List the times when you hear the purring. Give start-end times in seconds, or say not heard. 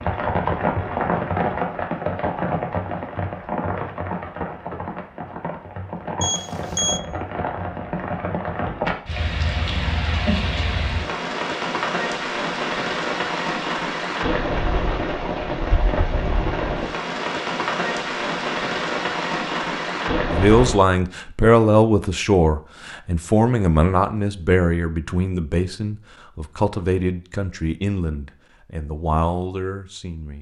not heard.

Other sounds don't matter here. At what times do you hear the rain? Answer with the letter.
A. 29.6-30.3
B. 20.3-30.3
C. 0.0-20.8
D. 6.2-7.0
C.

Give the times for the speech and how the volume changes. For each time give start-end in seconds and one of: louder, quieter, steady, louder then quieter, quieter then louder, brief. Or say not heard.
20.3-30.3 quieter.